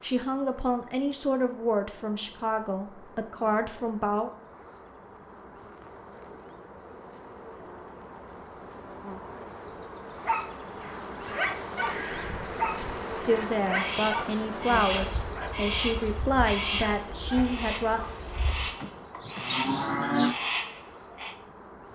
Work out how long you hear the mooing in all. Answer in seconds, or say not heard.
2 s.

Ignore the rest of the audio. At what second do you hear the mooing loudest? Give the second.
20 s.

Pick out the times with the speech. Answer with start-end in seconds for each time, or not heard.
0.0-4.3, 13.1-18.0.